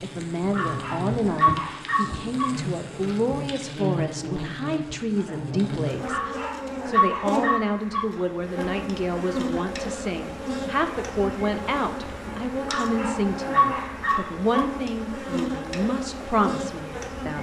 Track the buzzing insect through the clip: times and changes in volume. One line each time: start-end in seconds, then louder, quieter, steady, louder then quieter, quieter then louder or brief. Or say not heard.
0.0-17.3 steady.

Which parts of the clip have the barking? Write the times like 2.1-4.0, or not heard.
0.5-2.5, 6.0-8.1, 12.7-14.7.